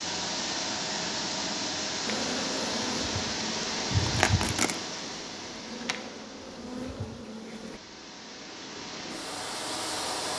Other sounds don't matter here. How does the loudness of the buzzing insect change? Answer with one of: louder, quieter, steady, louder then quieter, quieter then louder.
louder then quieter.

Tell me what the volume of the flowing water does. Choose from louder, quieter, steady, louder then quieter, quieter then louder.
quieter then louder.